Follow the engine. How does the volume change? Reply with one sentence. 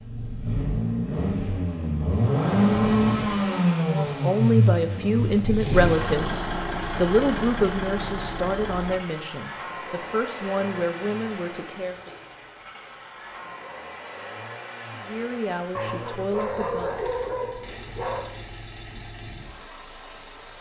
The loudness of the engine goes down.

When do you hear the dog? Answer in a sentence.
The dog can be heard from 15.8 to 18.3 s.